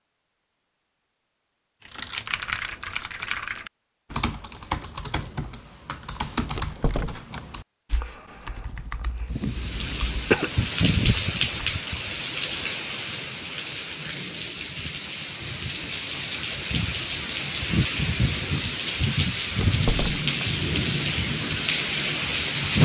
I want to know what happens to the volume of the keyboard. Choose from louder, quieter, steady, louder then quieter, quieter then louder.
quieter.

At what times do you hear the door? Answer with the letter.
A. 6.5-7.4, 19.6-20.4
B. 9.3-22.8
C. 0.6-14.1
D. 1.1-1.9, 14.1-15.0
A.